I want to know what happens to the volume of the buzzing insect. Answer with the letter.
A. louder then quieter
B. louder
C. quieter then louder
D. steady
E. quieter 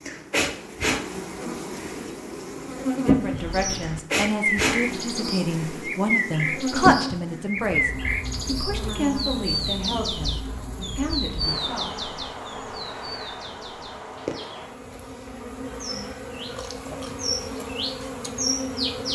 E.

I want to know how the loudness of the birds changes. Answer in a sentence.
The volume of the birds goes down, then up.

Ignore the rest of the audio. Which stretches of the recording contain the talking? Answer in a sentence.
You can hear the talking from 2.9 to 11.9 s.